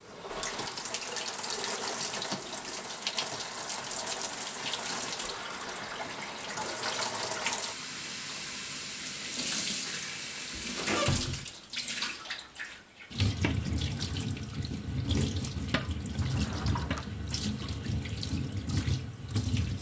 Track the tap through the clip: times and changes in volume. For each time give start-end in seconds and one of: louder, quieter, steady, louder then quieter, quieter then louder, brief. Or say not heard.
0.0-19.7 steady.